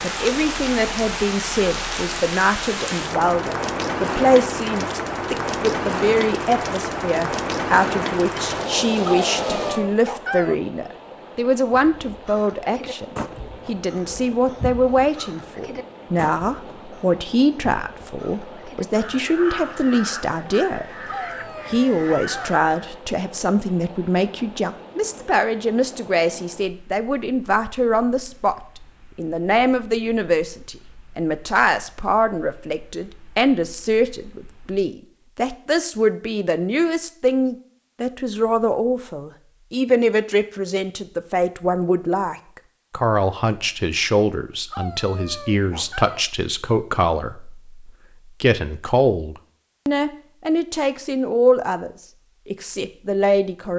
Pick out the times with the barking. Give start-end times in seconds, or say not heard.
9.1-10.6, 21.1-22.6, 44.7-46.2.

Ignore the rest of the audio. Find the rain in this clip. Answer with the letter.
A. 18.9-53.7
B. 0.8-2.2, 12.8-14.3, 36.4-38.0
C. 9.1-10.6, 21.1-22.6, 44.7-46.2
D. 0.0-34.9
D.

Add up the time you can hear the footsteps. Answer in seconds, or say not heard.
not heard.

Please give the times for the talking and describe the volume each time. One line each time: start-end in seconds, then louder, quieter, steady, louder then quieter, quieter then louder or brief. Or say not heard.
0.0-20.9 steady
21.6-28.6 steady
29.1-53.7 steady.